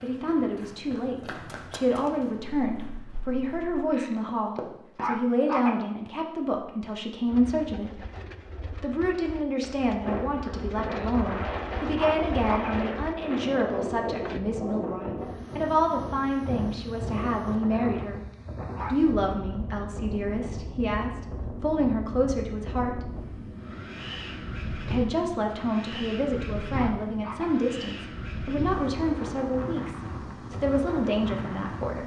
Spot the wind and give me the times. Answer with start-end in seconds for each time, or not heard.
10.0-32.0.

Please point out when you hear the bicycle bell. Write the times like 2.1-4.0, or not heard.
not heard.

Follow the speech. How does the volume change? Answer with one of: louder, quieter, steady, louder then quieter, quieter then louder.
steady.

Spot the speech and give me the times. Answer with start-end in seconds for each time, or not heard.
0.0-8.0, 8.8-18.2, 18.9-23.0, 24.9-32.0.